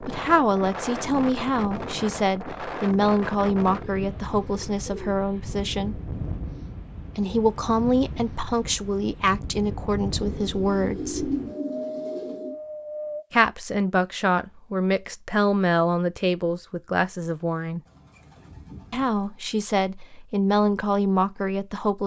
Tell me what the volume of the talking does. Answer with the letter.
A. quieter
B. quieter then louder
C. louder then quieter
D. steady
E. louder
D.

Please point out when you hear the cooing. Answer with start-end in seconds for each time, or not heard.
3.8-5.6, 10.2-12.6, 17.9-19.3.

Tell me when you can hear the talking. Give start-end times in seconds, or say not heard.
0.0-6.0, 7.2-11.3, 13.3-17.8, 18.9-22.0.